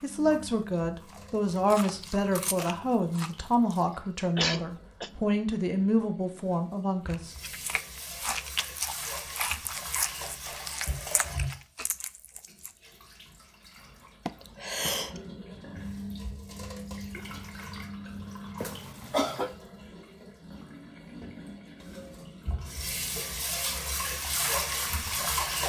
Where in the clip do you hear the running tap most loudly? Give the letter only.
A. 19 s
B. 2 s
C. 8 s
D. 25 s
D.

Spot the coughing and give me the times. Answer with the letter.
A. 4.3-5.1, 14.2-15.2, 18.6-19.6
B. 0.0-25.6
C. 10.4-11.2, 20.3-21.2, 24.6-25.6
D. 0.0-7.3
A.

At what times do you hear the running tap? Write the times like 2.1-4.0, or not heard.
0.0-25.6.